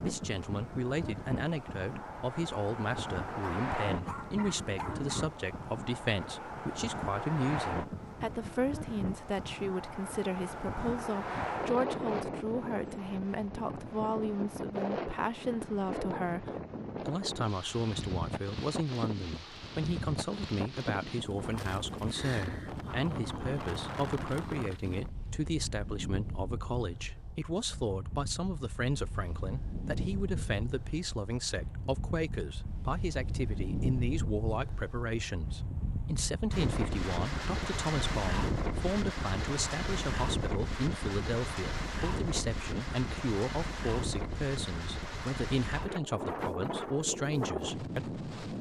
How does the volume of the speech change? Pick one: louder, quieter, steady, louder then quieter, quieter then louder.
steady.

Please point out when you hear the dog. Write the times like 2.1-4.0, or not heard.
3.4-5.3.